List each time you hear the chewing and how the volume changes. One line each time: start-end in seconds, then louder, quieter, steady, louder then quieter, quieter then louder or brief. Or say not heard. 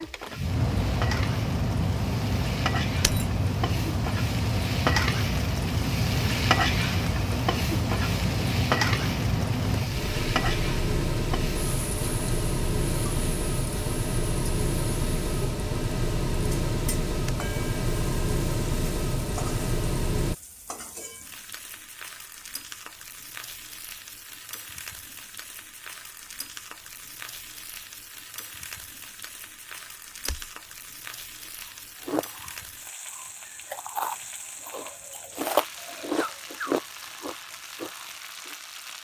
31.6-38.5 louder then quieter.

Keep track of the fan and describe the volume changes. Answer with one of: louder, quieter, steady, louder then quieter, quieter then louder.
steady.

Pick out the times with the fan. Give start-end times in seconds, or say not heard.
0.0-20.4.